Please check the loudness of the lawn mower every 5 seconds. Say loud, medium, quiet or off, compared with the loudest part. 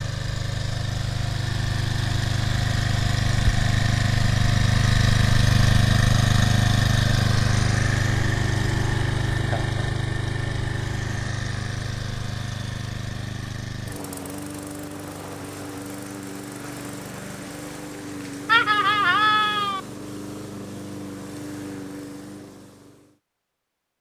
loud, loud, medium, quiet, quiet.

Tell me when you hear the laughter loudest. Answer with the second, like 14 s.
19 s.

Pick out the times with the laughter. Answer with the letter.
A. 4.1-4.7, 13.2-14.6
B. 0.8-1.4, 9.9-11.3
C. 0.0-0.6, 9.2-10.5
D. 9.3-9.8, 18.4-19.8
D.